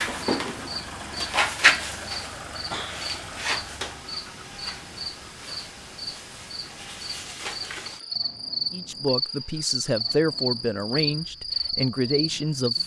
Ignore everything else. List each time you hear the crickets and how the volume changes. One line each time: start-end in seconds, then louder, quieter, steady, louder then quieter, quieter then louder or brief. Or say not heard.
0.0-12.8 quieter then louder.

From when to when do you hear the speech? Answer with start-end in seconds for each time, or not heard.
8.7-12.8.